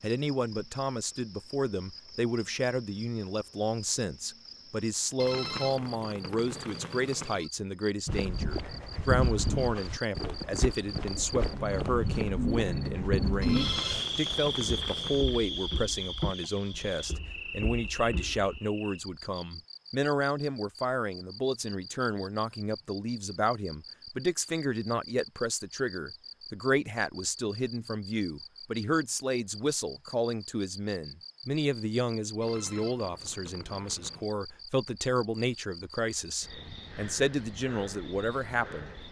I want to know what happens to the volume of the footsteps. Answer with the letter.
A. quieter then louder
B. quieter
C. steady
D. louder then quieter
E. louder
B.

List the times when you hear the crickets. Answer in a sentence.
The crickets can be heard from 0.0 to 39.0 s.